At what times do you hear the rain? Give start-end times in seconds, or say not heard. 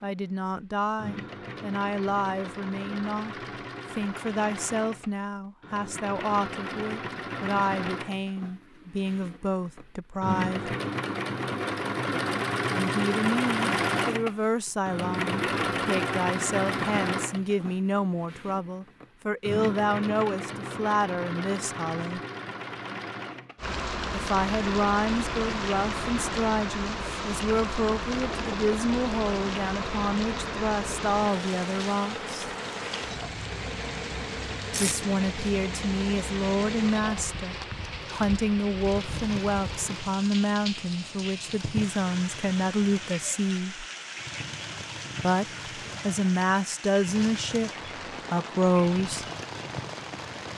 23.6-50.5.